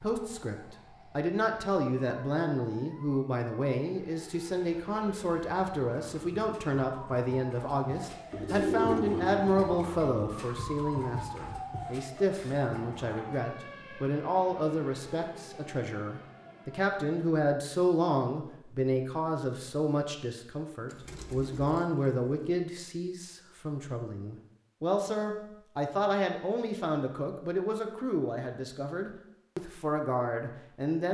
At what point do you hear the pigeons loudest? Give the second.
9 s.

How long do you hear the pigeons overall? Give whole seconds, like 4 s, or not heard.
3 s.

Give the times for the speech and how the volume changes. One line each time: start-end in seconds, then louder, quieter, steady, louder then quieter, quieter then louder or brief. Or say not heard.
0.0-31.0 steady.